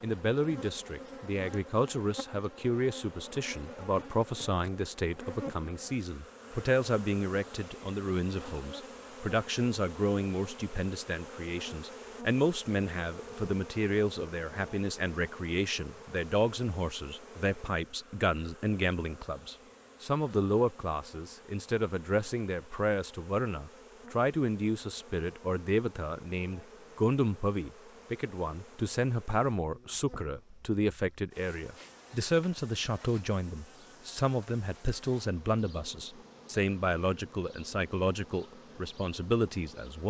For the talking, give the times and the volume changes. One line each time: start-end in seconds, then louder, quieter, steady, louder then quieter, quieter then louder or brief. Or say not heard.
0.0-40.0 steady.